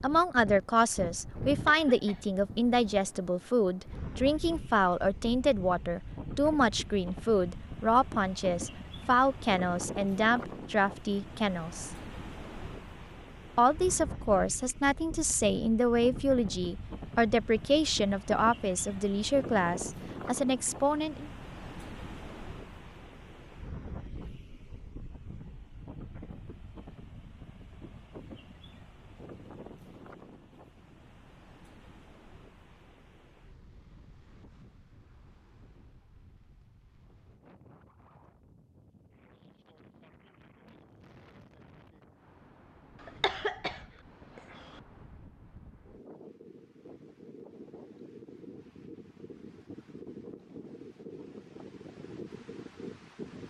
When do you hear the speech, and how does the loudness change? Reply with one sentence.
The speech can be heard from 0.0 to 11.9 s, at a steady volume; and from 13.6 to 21.3 s, at a steady volume.